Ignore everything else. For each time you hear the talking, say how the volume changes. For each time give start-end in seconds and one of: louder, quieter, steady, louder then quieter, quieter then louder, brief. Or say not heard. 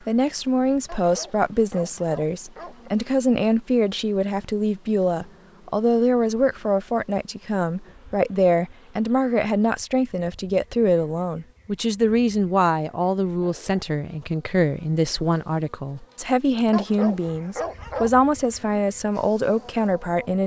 0.1-20.4 steady.